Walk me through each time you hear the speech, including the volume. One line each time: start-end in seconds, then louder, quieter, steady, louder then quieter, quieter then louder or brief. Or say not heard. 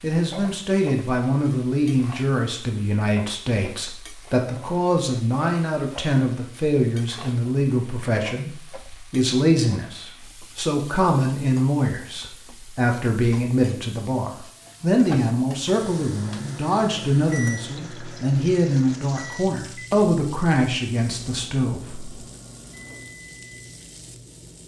0.0-22.2 steady.